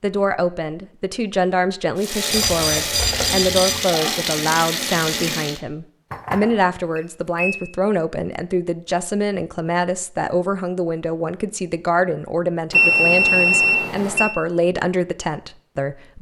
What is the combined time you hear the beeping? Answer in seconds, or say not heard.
5 s.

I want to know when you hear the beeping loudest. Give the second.
13 s.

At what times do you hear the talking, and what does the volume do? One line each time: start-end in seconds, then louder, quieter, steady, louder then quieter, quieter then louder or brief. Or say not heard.
0.0-16.1 steady.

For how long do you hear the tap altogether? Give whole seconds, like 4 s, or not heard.
4 s.